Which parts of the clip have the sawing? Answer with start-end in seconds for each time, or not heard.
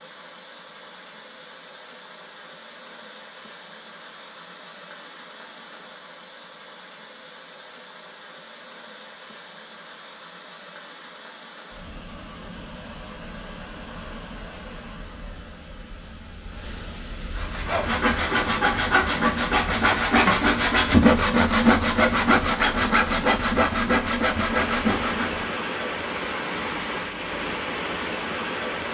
17.4-25.5.